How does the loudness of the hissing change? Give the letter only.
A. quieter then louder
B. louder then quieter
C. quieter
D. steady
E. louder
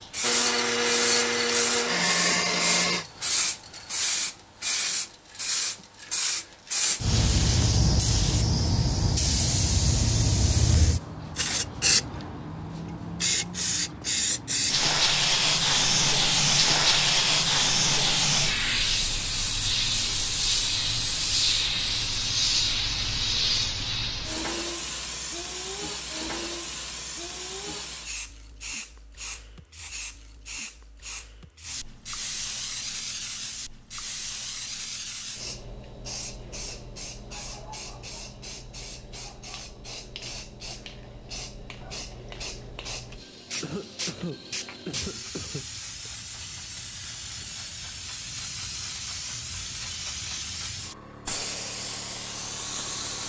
C.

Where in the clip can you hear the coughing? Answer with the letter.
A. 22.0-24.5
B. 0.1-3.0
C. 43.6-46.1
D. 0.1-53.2
C.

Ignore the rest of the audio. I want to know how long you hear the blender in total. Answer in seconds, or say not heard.
3 s.